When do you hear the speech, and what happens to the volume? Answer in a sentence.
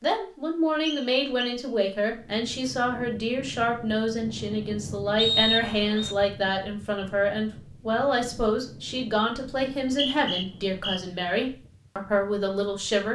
The speech can be heard from 0.0 to 13.1 s, at a steady volume.